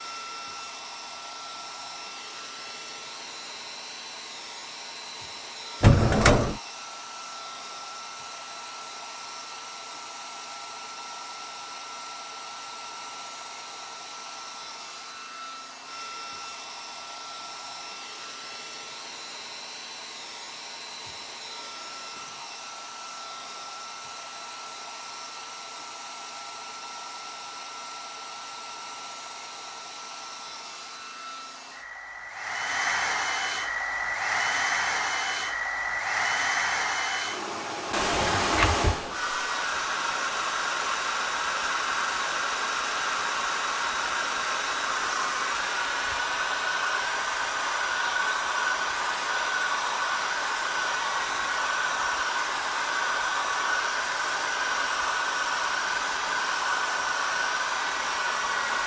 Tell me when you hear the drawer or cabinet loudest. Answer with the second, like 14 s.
6 s.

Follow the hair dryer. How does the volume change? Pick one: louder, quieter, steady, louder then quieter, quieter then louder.
louder.